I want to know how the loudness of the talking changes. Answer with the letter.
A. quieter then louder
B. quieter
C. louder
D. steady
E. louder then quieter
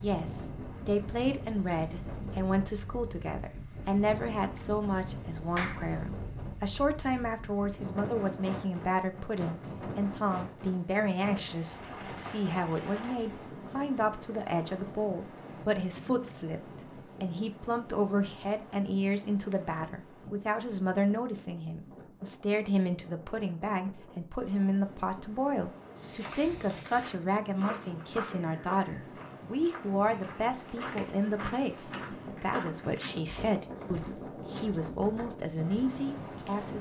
D.